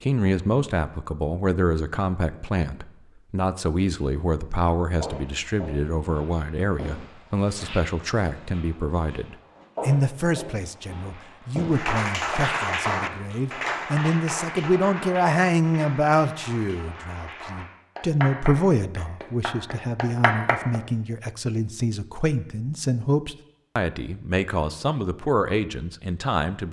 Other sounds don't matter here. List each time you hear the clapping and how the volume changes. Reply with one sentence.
You can hear the clapping from 11.7 to 20.8 s, getting quieter then louder.